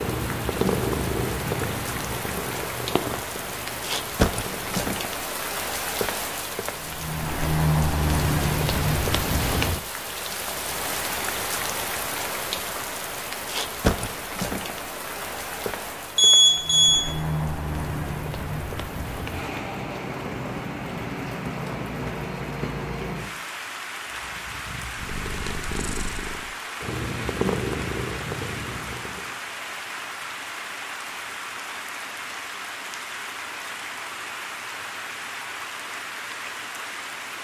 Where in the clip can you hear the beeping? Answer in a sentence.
The beeping can be heard from 16.1 to 17.1 s.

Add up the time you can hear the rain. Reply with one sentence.
You can hear the rain for 37 seconds altogether.